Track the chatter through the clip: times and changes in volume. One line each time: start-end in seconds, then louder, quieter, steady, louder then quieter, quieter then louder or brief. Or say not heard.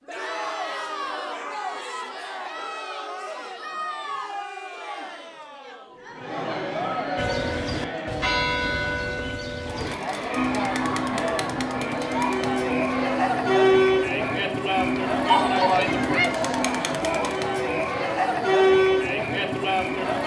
0.1-20.2 louder.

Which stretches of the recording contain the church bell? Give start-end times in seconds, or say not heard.
7.2-16.6.